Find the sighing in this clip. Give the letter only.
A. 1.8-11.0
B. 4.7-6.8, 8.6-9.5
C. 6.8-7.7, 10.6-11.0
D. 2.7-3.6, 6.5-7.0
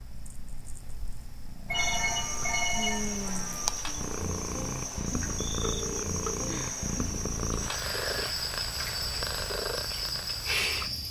D.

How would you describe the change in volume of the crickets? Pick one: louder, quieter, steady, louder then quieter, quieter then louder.
steady.